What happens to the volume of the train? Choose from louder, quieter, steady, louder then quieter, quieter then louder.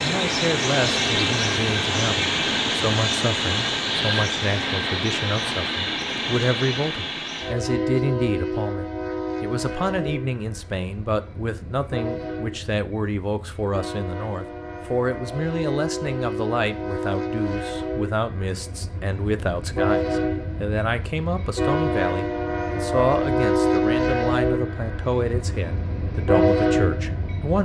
quieter then louder.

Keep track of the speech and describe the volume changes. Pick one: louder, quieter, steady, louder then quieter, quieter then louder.
steady.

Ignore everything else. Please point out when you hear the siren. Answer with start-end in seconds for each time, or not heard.
not heard.